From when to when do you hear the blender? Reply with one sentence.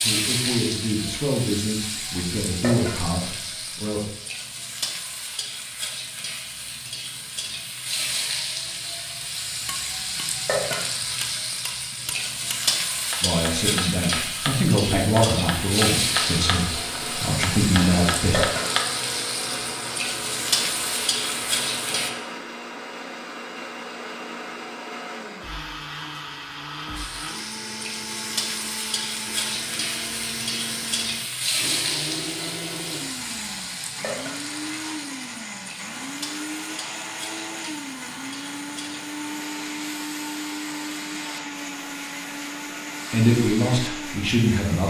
The blender can be heard from 16.1 to 44.8 s.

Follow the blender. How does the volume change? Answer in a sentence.
The loudness of the blender stays about the same.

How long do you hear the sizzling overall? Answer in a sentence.
The sizzling can be heard for 40 seconds in total.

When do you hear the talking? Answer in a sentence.
The talking can be heard from 0.0 to 4.0 s, from 13.2 to 18.4 s and from 43.1 to 44.8 s.